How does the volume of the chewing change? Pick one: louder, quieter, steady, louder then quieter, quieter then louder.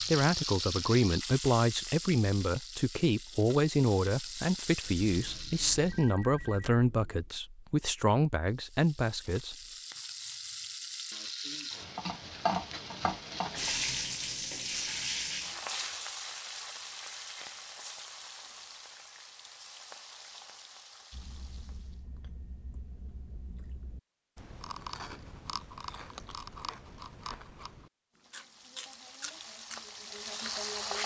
louder.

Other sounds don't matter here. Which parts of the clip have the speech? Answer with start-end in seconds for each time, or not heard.
0.0-9.6.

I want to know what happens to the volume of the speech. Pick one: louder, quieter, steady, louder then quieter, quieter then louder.
steady.